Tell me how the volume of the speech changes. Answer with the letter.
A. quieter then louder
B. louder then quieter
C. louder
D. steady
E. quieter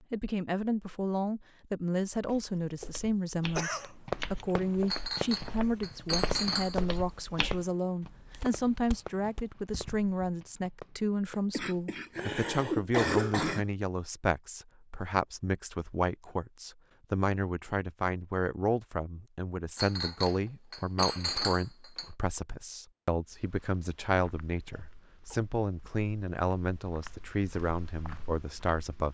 D.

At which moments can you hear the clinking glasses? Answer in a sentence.
You can hear the clinking glasses from 4.8 to 6.8 s and from 19.8 to 22.1 s.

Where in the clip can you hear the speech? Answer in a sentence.
You can hear the speech from 0.1 to 29.1 s.